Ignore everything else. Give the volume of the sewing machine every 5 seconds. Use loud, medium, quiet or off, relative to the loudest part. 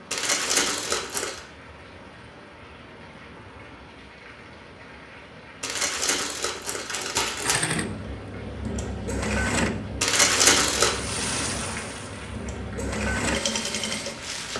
off, loud, loud.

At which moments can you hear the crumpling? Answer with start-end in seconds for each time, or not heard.
0.1-1.4, 5.6-7.6, 10.0-10.9.